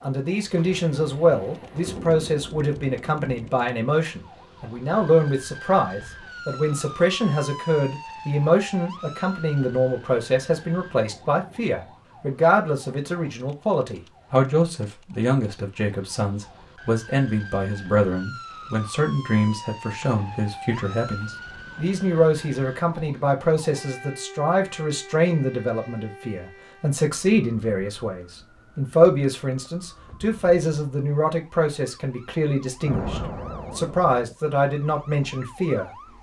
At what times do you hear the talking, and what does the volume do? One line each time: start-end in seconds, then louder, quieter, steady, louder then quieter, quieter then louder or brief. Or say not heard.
0.0-35.9 steady.